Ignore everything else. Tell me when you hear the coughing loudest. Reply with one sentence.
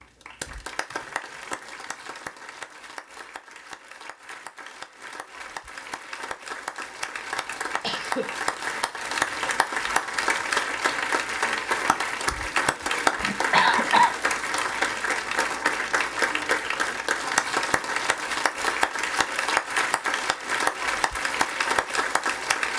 The volume of the coughing peaks at 14 seconds.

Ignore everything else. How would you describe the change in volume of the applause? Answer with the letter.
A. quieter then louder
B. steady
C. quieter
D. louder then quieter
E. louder
E.